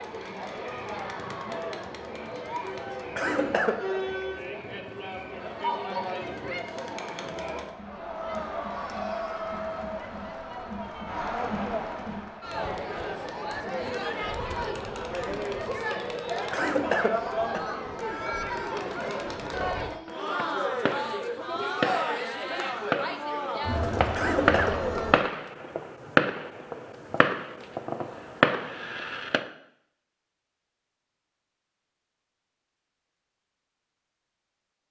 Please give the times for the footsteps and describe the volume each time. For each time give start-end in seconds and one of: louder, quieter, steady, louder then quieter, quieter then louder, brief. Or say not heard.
not heard.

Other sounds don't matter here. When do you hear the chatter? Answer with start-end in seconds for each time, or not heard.
0.0-25.2.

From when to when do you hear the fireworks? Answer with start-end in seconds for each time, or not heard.
20.1-29.4.